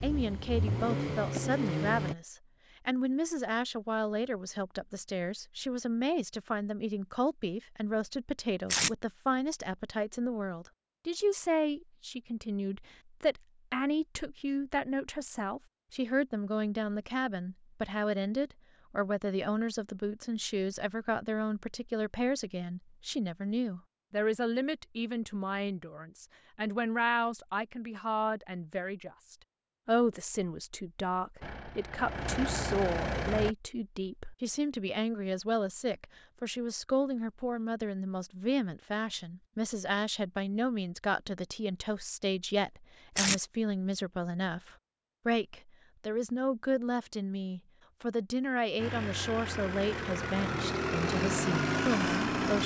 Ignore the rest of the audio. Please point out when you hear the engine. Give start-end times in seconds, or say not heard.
0.0-2.1, 31.4-33.5, 48.8-52.6.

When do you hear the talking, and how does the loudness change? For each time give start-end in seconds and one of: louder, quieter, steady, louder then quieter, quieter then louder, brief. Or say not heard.
0.0-52.6 steady.